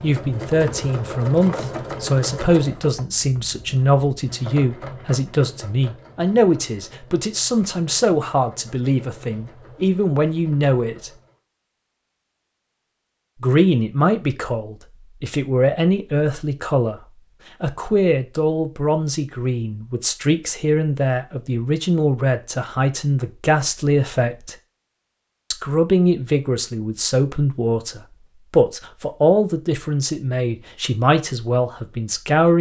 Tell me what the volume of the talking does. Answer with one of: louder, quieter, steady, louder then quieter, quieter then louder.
steady.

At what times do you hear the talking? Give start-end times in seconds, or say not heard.
0.0-11.1, 13.4-24.6, 25.5-32.5.